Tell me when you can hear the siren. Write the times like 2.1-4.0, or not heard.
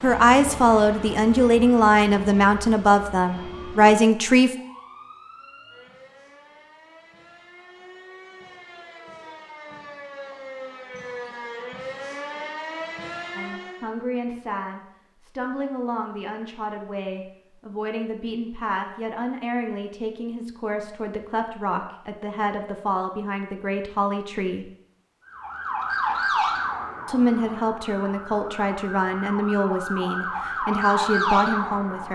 0.0-13.9, 25.2-32.0.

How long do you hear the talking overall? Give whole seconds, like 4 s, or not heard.
21 s.